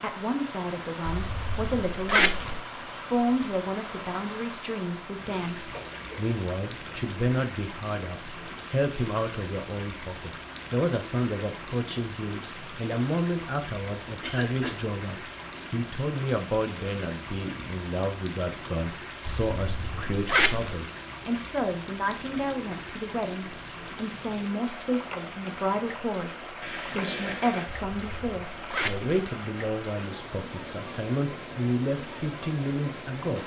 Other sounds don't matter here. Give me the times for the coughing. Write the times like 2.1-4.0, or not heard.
5.7-6.3, 14.2-14.8, 26.6-27.7.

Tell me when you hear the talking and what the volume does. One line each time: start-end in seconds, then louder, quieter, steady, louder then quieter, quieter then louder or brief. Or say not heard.
0.0-33.4 steady.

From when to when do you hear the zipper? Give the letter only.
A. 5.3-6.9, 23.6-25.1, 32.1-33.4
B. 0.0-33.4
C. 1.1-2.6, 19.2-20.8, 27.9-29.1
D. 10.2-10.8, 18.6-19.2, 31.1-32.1
C.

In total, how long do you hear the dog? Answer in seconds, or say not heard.
not heard.